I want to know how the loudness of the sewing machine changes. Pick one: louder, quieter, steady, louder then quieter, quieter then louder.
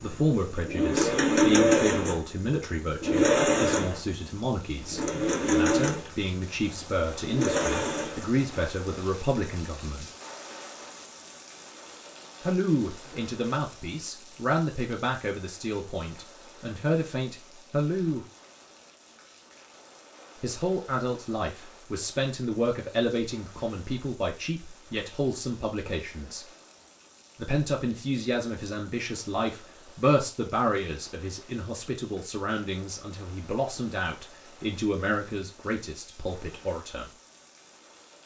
quieter.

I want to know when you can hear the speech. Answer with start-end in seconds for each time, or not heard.
0.0-10.1, 12.4-18.2, 20.4-26.4, 27.4-37.0.